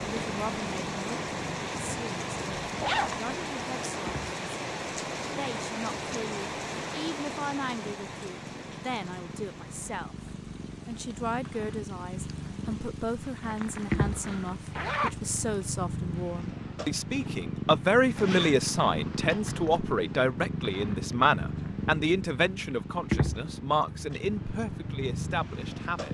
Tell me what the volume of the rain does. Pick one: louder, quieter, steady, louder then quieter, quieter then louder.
quieter.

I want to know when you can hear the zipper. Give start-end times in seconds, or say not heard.
2.8-3.2, 13.4-15.2, 18.1-19.8.